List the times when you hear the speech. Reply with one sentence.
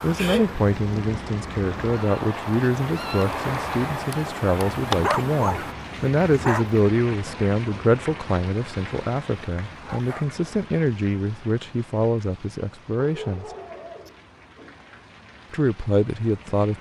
You can hear the speech from 0.0 to 13.4 s and from 15.5 to 16.7 s.